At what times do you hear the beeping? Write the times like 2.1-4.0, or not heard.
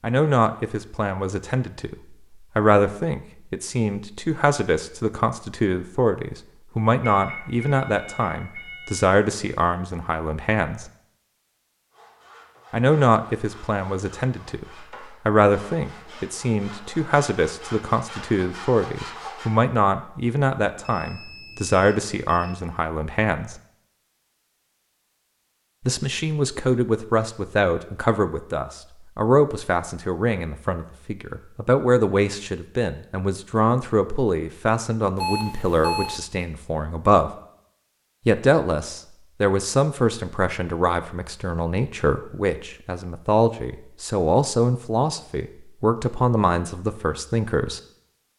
7.0-9.1, 20.8-22.6, 35.1-36.2.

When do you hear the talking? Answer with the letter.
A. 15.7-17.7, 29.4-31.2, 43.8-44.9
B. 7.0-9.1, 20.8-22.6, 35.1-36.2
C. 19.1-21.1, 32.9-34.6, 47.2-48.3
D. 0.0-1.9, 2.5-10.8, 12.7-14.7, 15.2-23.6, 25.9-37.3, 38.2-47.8
D.